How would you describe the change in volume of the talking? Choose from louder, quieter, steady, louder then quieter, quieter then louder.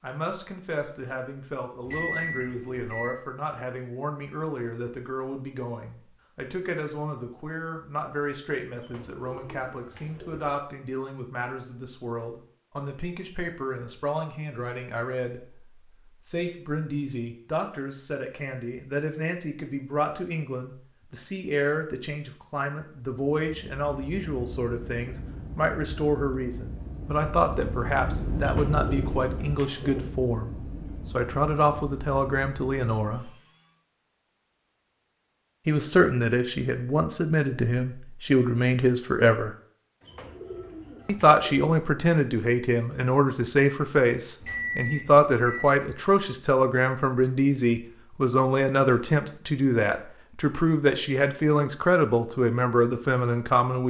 louder.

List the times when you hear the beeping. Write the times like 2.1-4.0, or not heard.
1.8-3.1, 44.4-45.6.